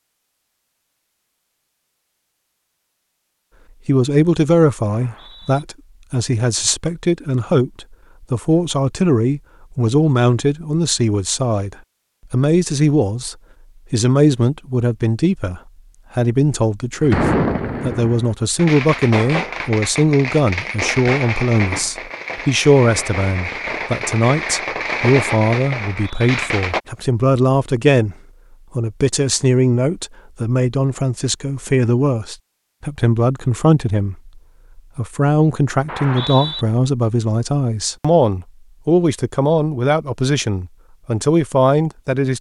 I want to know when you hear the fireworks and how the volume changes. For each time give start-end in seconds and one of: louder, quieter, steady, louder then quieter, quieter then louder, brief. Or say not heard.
17.0-26.8 steady.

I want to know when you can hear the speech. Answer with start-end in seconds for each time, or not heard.
3.9-28.1, 28.8-42.3.